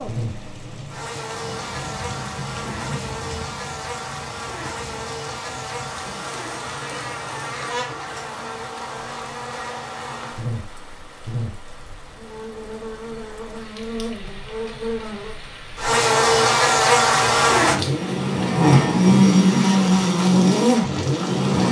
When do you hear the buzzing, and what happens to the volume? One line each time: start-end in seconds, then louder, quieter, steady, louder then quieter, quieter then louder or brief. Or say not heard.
0.0-21.6 louder.